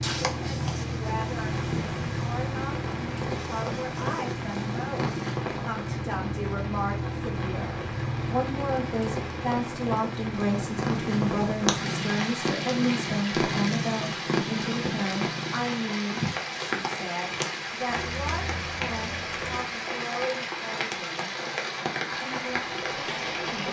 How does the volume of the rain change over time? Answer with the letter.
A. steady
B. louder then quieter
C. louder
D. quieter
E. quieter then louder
A.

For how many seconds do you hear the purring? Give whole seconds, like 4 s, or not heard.
15 s.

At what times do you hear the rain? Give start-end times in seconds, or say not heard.
0.0-23.6.